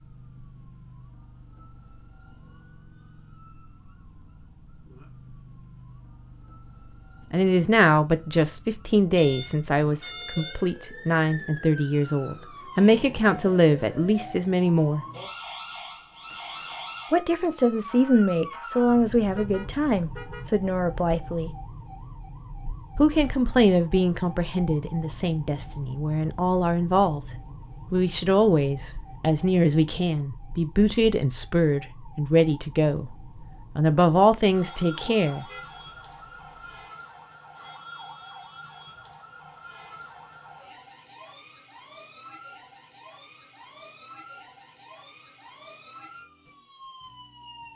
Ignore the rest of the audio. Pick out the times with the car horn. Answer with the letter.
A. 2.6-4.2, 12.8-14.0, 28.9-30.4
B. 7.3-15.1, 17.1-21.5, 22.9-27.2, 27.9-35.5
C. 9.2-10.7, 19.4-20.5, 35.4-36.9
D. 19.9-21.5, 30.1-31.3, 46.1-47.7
C.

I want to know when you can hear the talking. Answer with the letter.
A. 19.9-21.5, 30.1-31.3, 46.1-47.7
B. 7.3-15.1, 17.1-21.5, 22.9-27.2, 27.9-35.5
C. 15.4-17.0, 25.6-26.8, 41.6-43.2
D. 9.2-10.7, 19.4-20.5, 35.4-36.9
B.